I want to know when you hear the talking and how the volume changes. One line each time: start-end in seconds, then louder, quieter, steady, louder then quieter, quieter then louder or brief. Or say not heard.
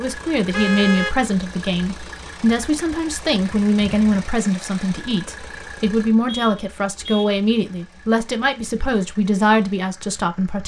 0.0-10.6 steady.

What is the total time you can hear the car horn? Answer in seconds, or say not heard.
2 s.